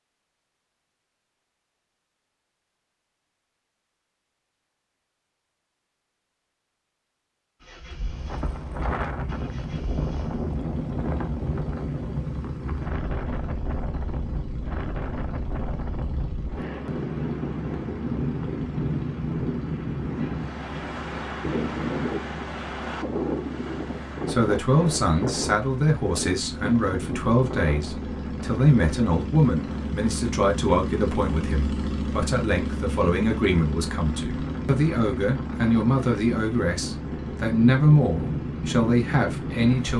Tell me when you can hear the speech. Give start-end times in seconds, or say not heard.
24.2-39.9.